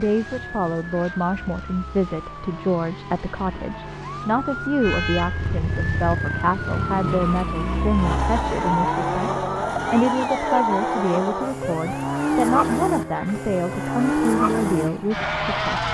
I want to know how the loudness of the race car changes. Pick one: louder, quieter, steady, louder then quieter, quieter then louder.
louder.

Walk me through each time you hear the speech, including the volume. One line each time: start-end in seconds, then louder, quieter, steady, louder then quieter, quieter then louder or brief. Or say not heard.
0.0-15.8 steady.